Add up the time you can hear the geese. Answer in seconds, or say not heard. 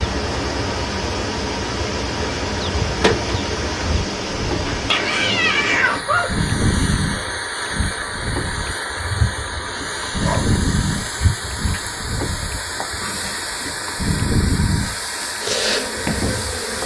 not heard.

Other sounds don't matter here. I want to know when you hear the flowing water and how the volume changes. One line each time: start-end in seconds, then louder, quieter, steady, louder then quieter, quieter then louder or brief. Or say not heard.
0.0-16.8 steady.